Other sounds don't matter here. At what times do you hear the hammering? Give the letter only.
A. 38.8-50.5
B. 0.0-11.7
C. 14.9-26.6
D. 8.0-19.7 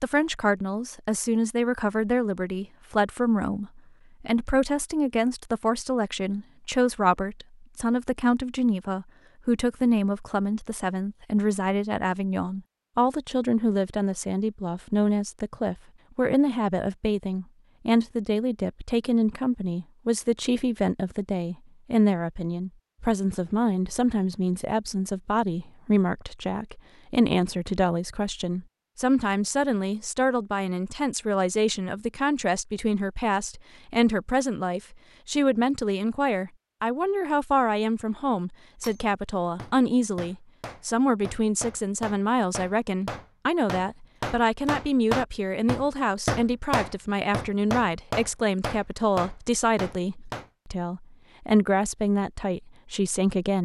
A.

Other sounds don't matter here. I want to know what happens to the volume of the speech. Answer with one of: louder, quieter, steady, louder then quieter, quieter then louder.
steady.